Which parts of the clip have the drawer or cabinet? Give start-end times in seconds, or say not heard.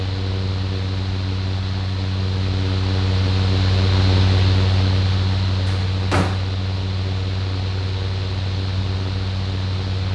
5.7-6.5.